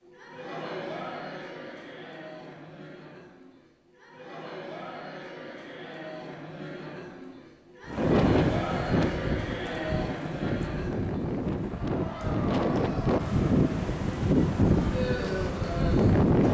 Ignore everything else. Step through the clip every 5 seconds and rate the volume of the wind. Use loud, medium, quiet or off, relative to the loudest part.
off, loud, loud, loud.